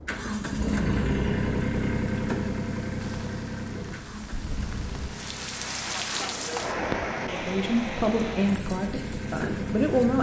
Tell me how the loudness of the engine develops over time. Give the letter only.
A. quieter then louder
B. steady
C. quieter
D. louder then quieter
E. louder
A.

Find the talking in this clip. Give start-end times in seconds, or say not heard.
7.2-10.1.